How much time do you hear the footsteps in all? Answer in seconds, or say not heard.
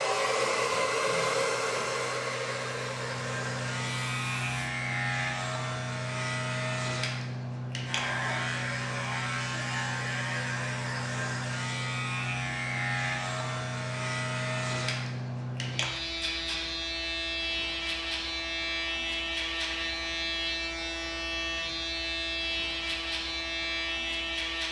not heard.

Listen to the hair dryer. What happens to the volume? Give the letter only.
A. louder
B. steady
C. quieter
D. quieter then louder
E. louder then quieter
C.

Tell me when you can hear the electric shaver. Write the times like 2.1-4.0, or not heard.
0.0-24.6.